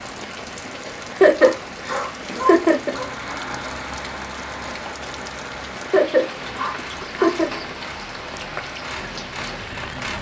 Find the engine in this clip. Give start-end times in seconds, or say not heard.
2.8-10.1.